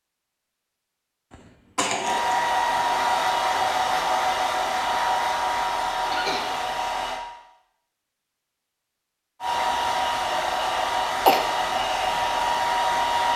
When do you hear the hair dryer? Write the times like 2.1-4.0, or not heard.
2.0-7.2, 9.4-13.3.